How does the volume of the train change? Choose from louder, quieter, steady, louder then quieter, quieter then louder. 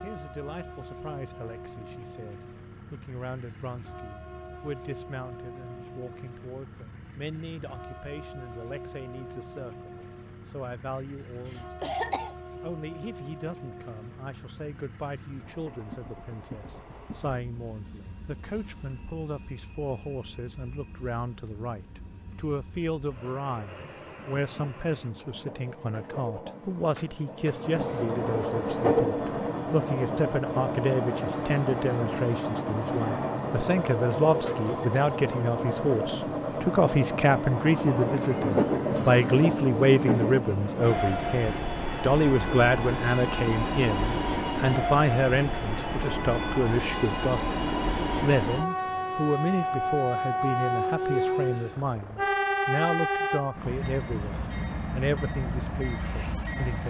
louder.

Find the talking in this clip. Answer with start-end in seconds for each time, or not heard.
0.0-56.8.